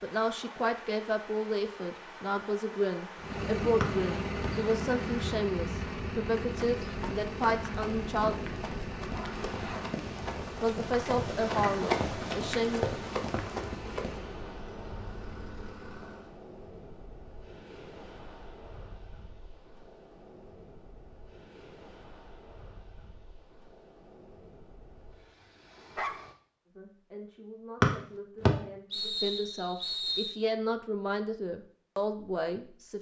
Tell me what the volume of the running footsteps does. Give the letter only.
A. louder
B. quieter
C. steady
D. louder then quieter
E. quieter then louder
A.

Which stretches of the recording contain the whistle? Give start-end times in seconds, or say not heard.
3.8-4.5, 27.8-30.4.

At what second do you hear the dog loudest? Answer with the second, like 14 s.
26 s.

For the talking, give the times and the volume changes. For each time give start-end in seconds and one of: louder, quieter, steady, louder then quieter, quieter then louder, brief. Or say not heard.
0.0-8.4 steady
10.6-12.8 brief
26.6-32.9 louder.